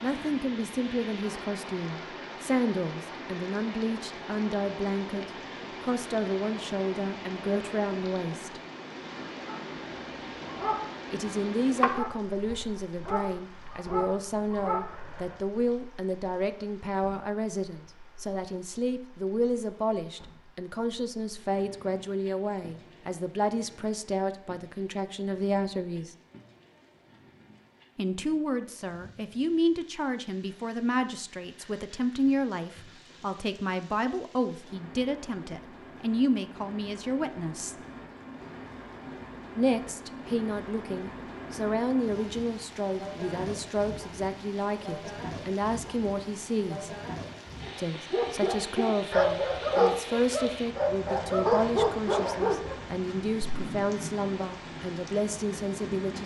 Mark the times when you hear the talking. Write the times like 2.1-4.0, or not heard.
0.0-8.6, 11.1-26.1, 27.9-37.8, 39.5-46.9, 47.8-56.2.